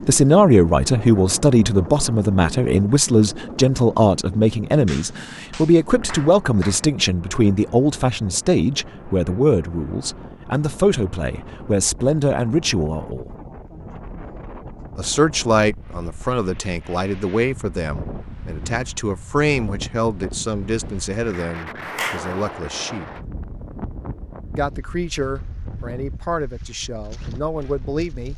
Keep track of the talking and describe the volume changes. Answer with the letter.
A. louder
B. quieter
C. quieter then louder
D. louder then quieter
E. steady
B.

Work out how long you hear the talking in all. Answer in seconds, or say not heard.
25 s.